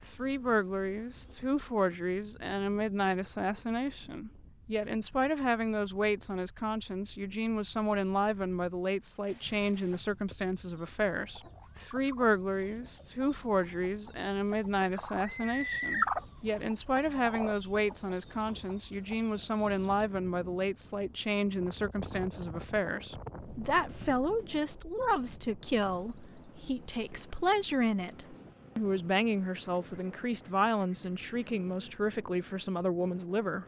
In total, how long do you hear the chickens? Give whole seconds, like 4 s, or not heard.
11 s.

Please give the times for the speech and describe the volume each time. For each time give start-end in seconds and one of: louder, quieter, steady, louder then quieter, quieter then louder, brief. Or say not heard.
0.0-33.6 steady.